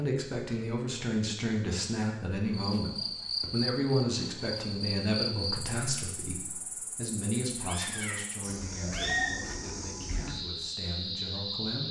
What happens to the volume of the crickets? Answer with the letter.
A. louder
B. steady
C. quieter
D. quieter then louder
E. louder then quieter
D.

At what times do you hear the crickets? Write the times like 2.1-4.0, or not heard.
2.5-11.8.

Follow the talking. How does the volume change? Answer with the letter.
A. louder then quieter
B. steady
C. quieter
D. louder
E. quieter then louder
C.